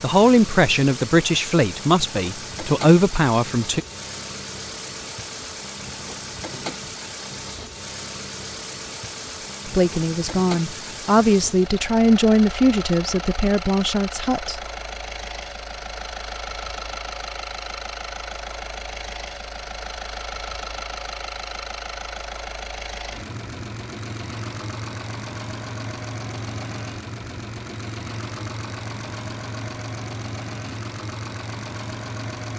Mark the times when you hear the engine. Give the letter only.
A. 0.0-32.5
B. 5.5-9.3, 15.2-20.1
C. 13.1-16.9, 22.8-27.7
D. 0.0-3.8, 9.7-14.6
A.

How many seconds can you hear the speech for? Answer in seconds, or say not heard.
9 s.